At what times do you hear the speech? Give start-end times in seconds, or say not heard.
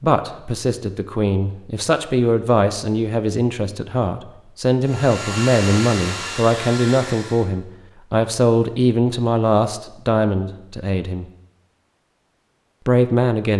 0.0-11.2, 12.8-13.5.